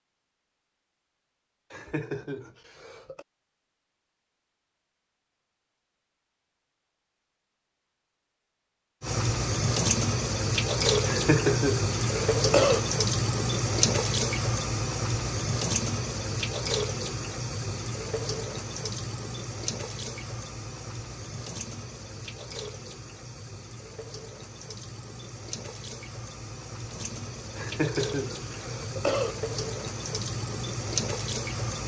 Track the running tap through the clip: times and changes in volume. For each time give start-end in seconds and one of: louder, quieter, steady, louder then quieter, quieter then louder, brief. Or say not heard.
9.0-31.8 quieter then louder.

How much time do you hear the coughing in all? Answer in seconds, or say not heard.
5 s.